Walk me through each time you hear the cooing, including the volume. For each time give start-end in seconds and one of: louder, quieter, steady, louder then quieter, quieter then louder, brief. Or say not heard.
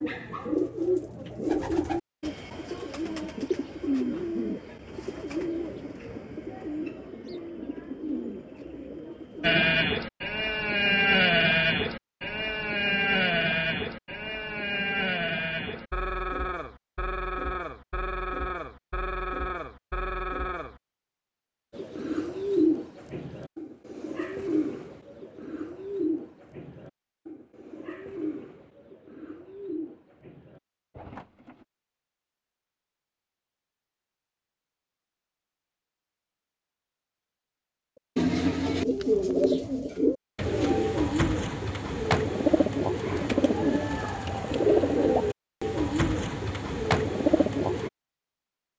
0.0-9.9 quieter
21.8-31.6 quieter
38.1-47.9 steady.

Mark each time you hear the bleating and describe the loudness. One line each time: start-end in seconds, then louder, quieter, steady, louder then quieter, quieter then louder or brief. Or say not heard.
9.4-20.8 quieter.